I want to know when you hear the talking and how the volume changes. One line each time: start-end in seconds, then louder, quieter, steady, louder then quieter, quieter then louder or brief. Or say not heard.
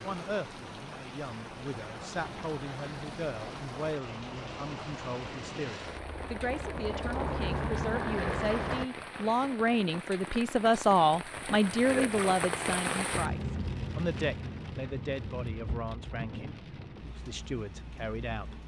0.0-18.6 louder then quieter.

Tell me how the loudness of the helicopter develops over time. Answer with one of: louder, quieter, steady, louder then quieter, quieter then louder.
louder.